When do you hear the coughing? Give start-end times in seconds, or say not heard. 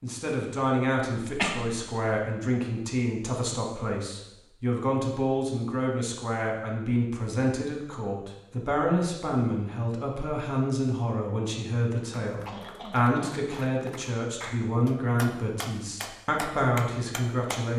1.1-2.0, 12.4-13.6.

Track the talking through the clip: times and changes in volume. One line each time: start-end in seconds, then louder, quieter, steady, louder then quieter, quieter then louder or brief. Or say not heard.
0.0-17.7 steady.